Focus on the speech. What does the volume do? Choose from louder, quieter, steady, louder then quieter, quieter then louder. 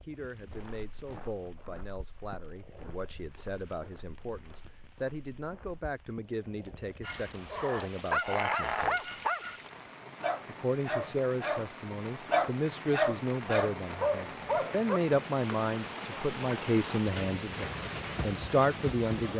louder.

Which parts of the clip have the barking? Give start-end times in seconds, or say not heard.
7.0-9.6, 10.2-15.0.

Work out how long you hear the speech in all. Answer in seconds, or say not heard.
18 s.